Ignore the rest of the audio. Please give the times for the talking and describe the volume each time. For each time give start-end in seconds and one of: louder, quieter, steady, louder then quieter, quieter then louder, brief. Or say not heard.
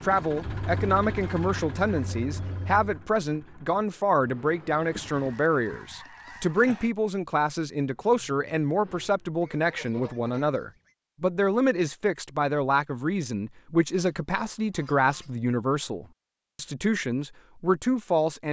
0.0-18.4 steady.